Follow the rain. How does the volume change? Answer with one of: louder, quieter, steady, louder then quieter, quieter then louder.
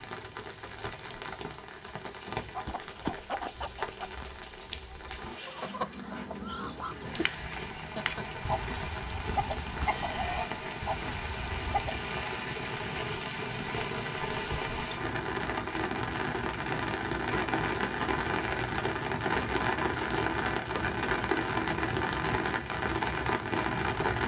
louder.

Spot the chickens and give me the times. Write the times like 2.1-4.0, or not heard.
2.5-12.3.